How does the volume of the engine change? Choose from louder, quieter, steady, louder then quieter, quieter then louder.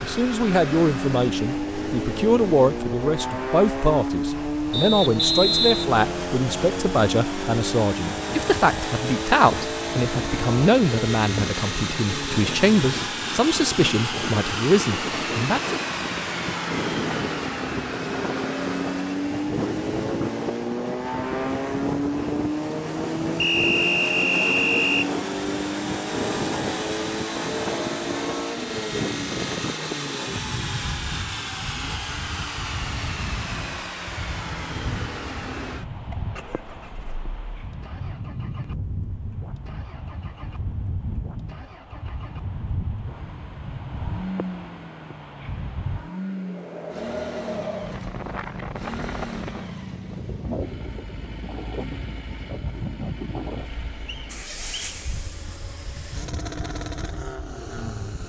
quieter.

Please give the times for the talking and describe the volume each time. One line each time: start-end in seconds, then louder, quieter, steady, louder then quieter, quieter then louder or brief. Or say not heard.
0.0-15.8 steady.